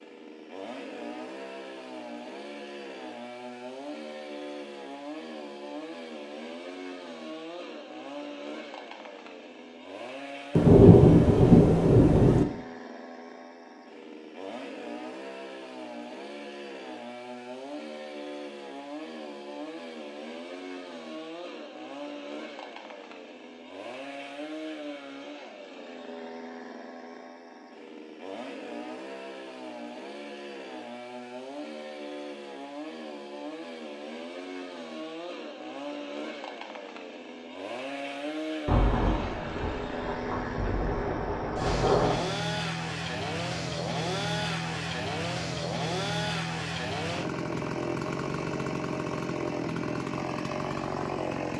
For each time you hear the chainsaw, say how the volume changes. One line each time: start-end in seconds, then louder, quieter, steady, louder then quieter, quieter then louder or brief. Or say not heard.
0.0-51.5 louder.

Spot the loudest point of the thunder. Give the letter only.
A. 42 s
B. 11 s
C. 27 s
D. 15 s
B.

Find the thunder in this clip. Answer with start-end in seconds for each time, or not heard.
10.6-12.4, 38.6-42.3.